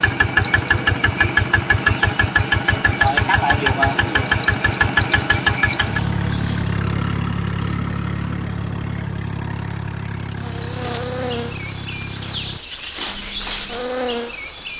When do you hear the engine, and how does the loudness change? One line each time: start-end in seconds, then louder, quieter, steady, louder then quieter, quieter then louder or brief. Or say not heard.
0.0-12.6 quieter.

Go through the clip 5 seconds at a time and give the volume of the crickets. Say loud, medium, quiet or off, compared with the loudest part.
quiet, medium, loud.